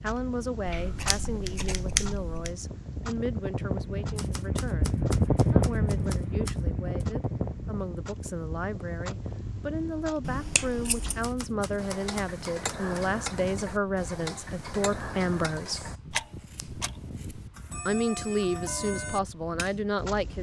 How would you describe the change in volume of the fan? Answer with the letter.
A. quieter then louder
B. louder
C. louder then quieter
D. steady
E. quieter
C.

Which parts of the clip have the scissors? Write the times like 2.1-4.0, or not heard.
0.7-2.5, 10.2-11.2, 15.7-17.4.